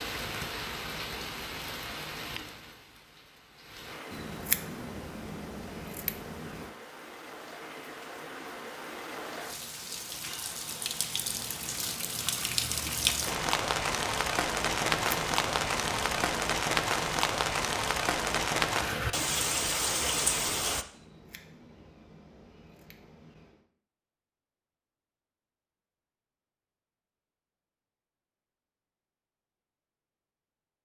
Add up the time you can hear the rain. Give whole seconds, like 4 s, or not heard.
21 s.